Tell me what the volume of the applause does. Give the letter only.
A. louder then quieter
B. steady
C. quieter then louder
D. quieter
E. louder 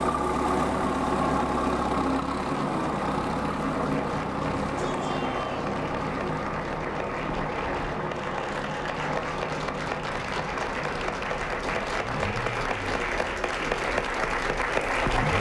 E.